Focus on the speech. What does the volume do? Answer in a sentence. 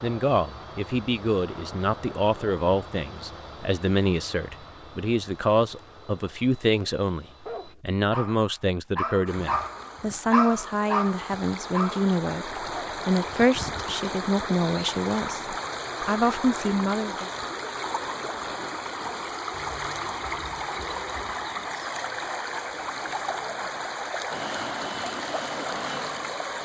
The loudness of the speech stays about the same.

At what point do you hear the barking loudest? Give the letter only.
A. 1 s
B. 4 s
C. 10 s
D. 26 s
C.